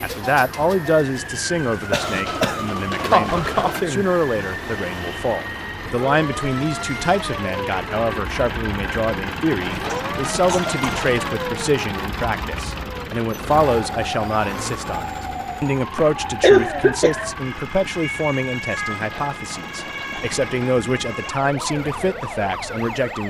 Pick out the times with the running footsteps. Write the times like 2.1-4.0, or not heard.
not heard.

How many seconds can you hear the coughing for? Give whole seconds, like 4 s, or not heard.
5 s.